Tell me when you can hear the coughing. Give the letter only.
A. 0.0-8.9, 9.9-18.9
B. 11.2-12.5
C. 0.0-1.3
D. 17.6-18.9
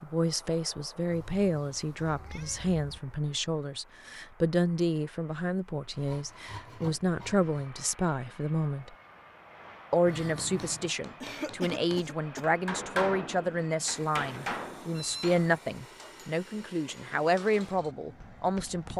B.